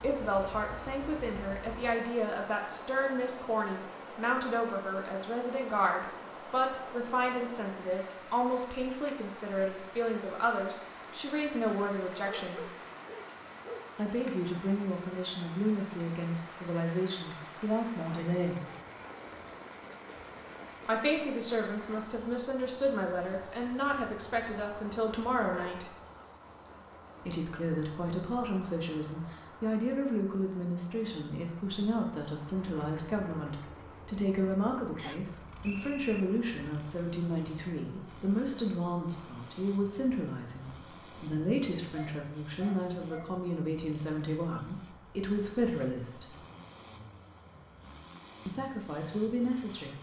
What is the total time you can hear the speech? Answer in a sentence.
The speech can be heard for 43 seconds in total.